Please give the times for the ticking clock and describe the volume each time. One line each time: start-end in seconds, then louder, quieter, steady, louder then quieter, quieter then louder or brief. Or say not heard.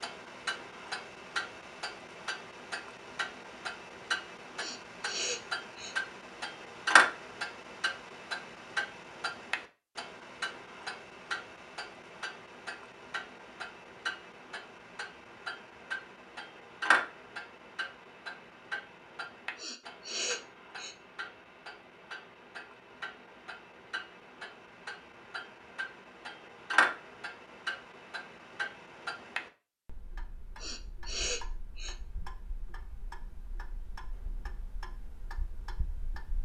0.0-36.4 quieter.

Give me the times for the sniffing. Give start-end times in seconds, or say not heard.
4.5-6.0, 19.6-20.9, 30.6-31.9.